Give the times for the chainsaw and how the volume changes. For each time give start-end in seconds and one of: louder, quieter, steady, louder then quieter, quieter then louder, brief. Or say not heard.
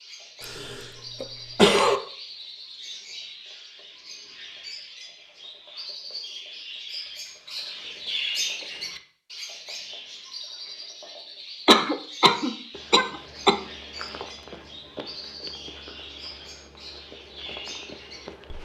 not heard.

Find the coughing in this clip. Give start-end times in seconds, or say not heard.
0.5-2.0, 11.7-13.6.